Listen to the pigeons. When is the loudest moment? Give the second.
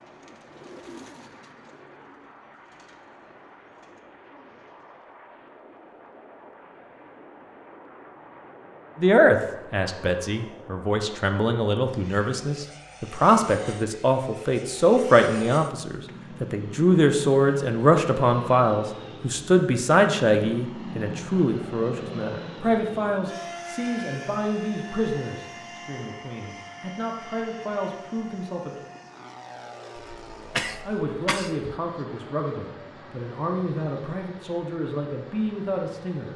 1 s.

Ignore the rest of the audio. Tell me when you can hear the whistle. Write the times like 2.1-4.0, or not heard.
not heard.